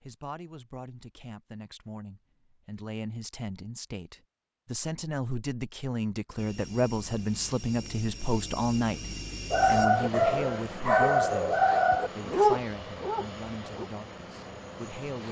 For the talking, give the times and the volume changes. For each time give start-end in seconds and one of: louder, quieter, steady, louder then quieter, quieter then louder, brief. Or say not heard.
0.0-15.2 louder then quieter.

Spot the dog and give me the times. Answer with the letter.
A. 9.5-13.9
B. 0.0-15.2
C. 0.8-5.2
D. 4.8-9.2
A.